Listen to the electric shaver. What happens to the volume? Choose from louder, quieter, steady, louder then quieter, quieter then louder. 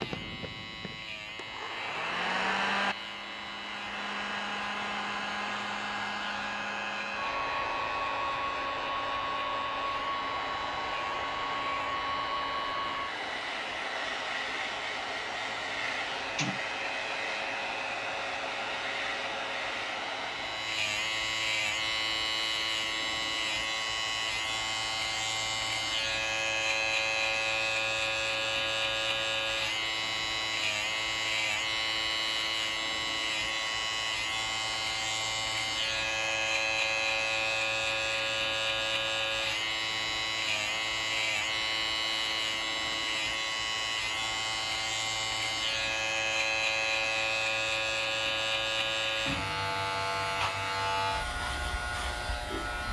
louder.